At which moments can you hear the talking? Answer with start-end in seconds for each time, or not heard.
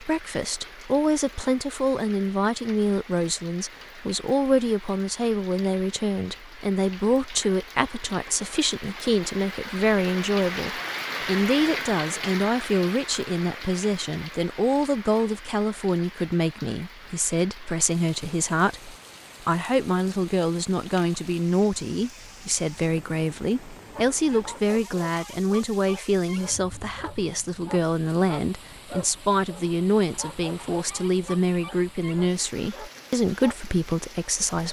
0.0-34.6.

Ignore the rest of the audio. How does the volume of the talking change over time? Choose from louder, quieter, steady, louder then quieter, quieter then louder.
steady.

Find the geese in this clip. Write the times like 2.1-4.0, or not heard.
not heard.